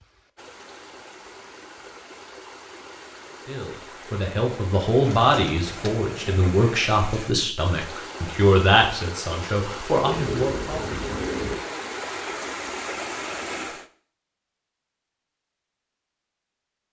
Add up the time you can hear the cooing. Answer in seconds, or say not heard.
3 s.